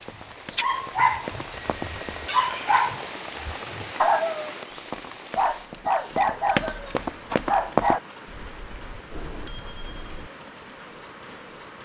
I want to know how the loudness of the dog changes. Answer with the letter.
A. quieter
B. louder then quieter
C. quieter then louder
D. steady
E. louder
D.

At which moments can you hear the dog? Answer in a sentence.
The dog can be heard from 0.0 to 8.0 s.